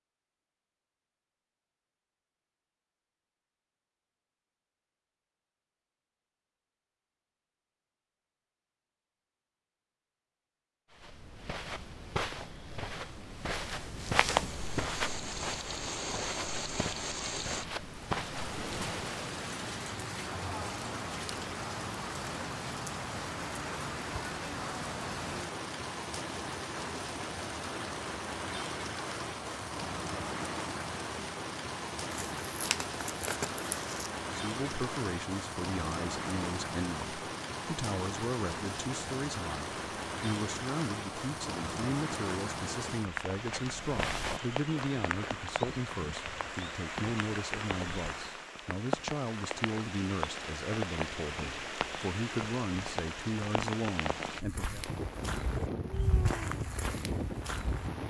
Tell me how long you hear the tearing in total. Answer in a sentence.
You can hear the tearing for 2 seconds altogether.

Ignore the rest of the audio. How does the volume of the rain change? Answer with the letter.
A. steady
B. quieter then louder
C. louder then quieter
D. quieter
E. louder
A.